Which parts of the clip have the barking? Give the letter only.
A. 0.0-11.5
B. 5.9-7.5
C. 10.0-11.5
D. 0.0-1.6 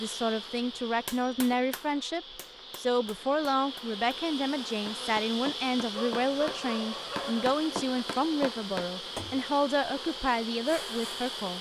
B.